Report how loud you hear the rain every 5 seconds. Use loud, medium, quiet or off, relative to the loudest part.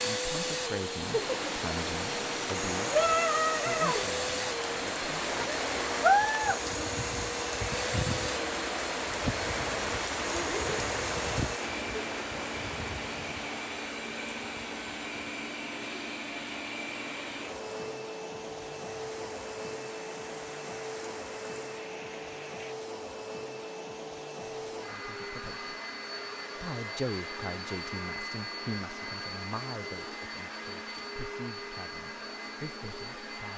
loud, loud, medium, quiet, quiet, off, off.